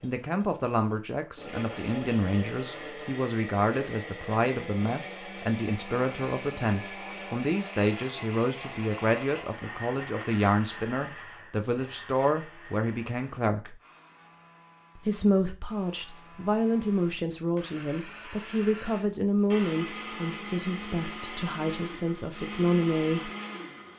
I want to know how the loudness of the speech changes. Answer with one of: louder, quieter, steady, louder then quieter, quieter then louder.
steady.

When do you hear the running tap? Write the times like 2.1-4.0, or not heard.
not heard.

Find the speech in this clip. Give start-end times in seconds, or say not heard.
0.0-13.8, 14.9-23.3.